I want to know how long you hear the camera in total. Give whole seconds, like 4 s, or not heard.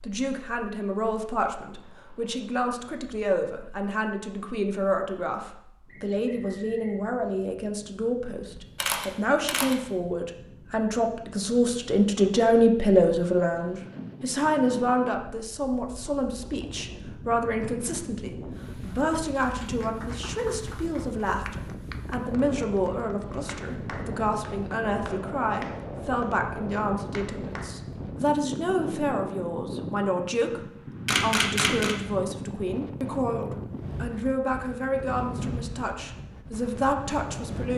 2 s.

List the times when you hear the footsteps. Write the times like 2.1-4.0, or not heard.
not heard.